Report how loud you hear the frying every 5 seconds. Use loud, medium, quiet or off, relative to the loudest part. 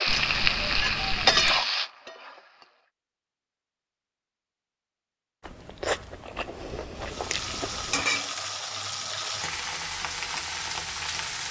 loud, medium, medium.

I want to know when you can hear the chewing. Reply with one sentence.
The chewing can be heard from 5.4 to 8.1 s.